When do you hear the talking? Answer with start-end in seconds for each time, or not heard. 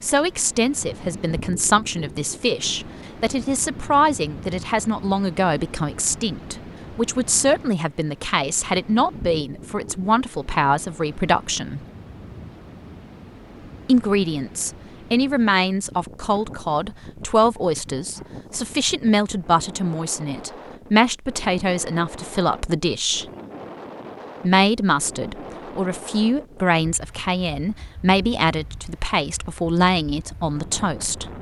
0.0-11.8, 13.8-23.2, 24.4-31.2.